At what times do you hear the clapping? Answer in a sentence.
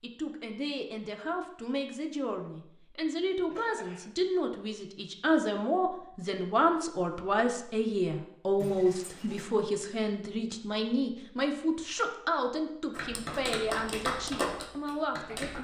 You can hear the clapping from 12.9 to 15.5 s.